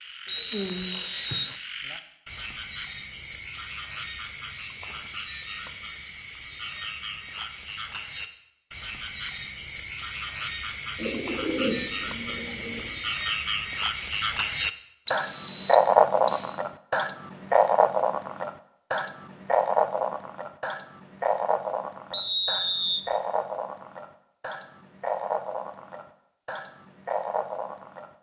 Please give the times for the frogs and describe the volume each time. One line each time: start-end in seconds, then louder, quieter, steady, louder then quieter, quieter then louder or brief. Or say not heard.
0.0-28.1 louder then quieter.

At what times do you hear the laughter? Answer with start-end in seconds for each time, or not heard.
not heard.